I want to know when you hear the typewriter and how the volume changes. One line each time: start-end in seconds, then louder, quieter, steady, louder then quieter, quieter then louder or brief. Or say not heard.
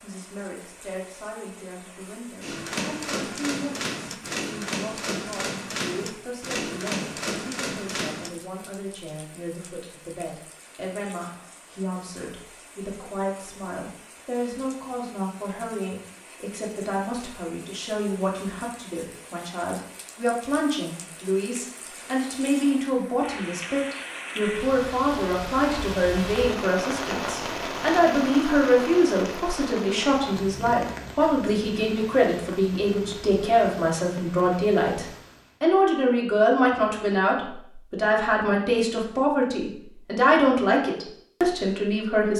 2.4-8.3 steady.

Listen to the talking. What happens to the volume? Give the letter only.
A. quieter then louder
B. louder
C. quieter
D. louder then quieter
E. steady
B.